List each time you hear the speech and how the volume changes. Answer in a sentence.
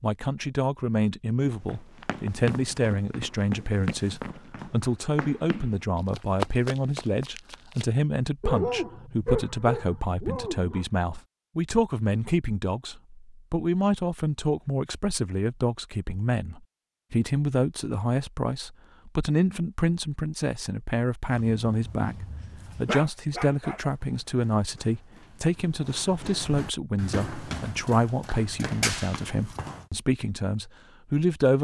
The speech can be heard from 0.0 to 31.5 s, at a steady volume.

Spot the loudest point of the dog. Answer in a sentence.
The loudest moment of the dog is at 9 seconds.